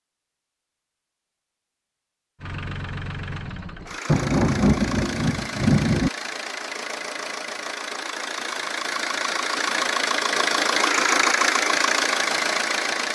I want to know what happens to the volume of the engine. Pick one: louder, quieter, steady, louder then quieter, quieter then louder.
louder.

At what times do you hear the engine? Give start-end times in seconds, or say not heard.
2.4-13.0.